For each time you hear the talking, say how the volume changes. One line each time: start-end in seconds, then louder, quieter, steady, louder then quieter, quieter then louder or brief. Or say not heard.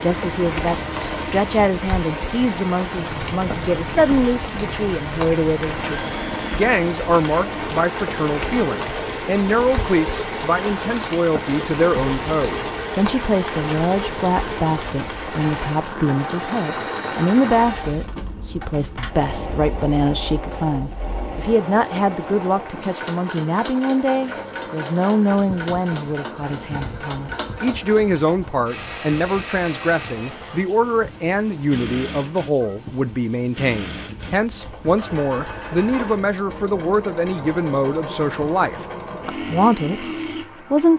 0.0-40.9 steady.